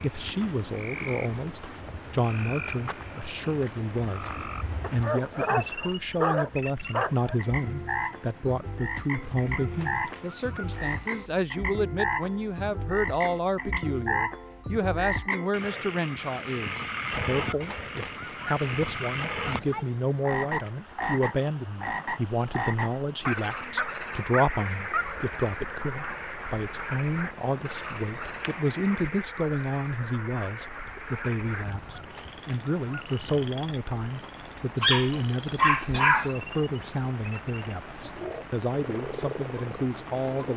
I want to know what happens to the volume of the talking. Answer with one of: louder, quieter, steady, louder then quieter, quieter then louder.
steady.